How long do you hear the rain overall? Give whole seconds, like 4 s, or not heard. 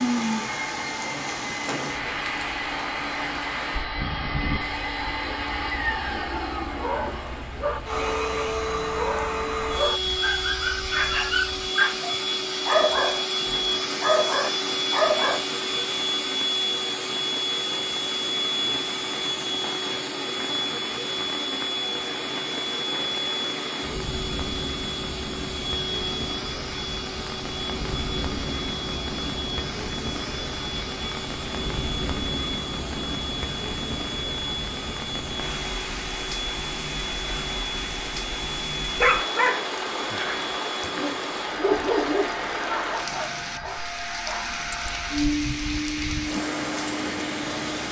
48 s.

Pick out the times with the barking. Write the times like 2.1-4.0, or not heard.
6.8-15.4, 39.0-44.9.